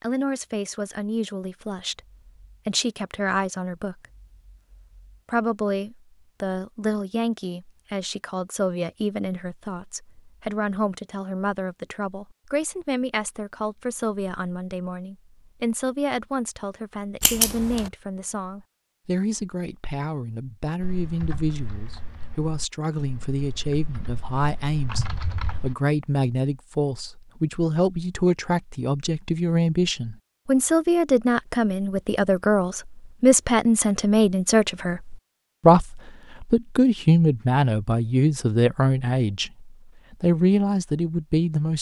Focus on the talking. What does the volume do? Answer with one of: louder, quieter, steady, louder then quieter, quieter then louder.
louder.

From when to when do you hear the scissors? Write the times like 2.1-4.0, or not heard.
17.2-17.9.